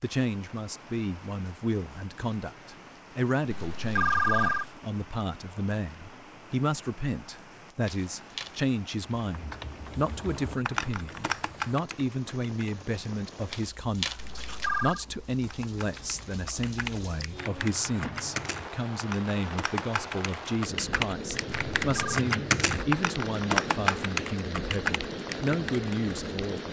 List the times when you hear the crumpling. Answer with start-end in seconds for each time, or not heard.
7.8-8.6, 13.5-14.7.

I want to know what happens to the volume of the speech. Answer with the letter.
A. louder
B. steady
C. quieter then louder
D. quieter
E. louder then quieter
B.